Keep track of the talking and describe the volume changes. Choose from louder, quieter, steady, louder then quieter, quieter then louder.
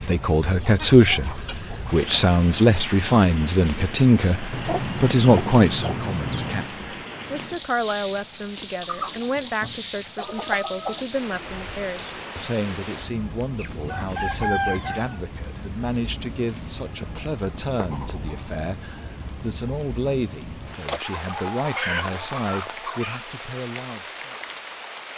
quieter.